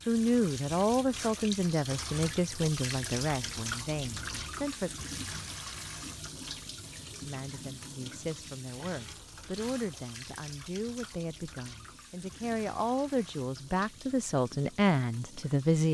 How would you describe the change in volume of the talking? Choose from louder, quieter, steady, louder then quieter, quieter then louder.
quieter then louder.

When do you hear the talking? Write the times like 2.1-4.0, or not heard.
0.1-4.9, 7.2-15.8.